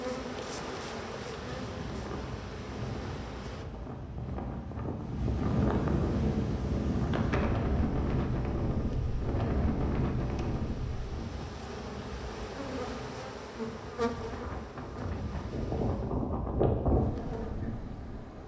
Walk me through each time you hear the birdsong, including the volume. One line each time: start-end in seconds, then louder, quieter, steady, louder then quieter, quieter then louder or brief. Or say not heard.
not heard.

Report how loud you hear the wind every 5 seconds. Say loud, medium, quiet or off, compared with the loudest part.
medium, loud, medium, loud.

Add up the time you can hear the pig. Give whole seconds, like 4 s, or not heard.
not heard.